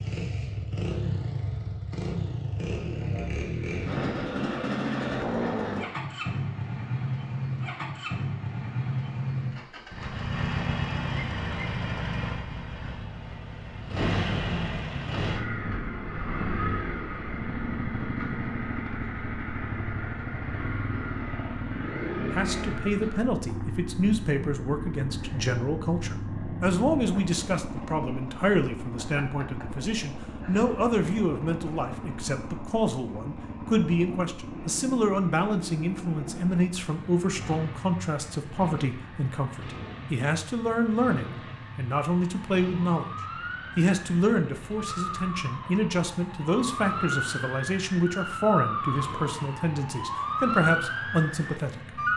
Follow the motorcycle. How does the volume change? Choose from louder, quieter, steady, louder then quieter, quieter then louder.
quieter.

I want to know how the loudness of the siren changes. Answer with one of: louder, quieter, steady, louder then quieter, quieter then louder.
louder.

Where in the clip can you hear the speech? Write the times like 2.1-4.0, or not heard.
22.3-43.1, 43.8-52.0.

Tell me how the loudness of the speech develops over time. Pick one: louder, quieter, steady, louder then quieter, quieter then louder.
steady.